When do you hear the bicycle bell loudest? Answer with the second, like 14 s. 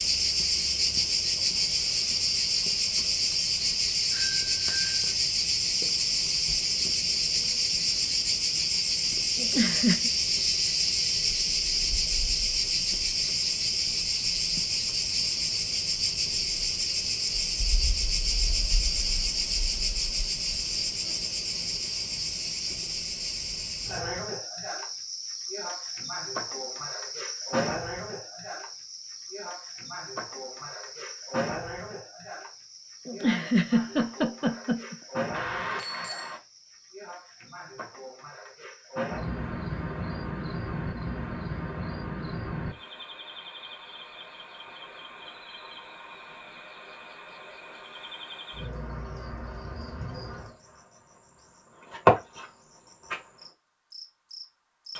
36 s.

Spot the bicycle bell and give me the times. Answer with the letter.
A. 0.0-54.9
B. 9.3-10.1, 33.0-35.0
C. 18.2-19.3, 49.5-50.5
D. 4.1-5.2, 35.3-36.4
D.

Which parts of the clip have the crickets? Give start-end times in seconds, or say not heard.
0.0-54.9.